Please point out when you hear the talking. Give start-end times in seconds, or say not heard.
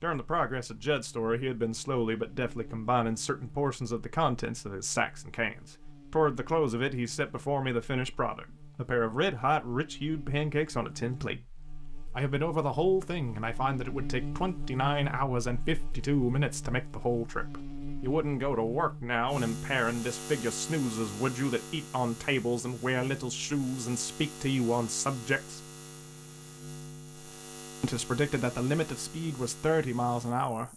0.0-11.5, 12.2-25.6, 27.8-30.7.